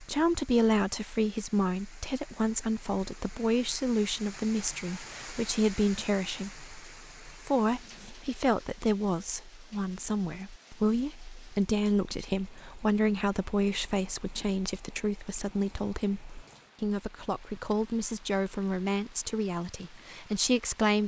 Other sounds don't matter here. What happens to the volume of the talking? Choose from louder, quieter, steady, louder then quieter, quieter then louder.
steady.